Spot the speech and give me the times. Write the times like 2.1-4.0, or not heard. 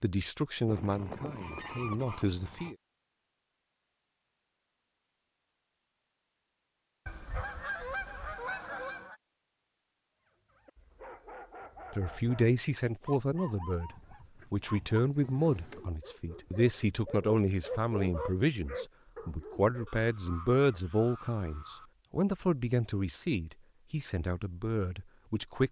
0.0-2.8, 11.9-13.9, 14.5-25.6.